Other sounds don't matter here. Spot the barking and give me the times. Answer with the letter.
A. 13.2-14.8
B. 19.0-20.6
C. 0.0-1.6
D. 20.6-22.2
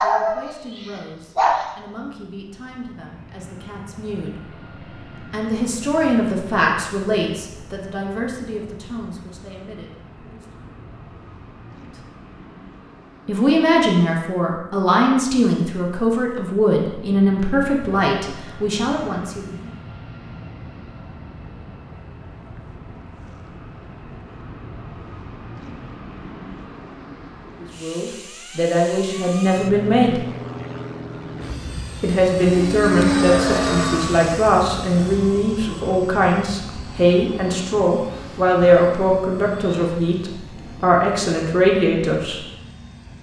C.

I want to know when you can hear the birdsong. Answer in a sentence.
You can't hear the birdsong here.